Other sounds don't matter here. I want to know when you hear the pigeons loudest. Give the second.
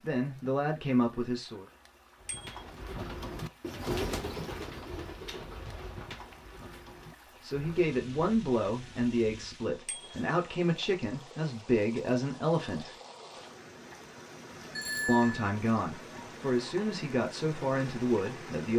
4 s.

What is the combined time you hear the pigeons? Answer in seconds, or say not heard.
7 s.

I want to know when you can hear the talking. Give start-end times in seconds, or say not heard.
0.0-1.6, 7.4-12.9, 15.1-18.7.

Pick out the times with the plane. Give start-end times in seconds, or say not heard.
not heard.